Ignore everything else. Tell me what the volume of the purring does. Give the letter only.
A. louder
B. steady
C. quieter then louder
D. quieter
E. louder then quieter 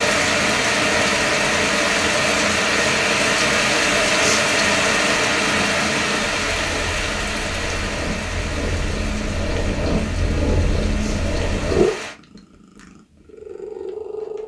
A.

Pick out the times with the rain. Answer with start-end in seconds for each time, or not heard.
0.0-12.2.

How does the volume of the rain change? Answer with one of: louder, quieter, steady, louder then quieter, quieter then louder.
quieter.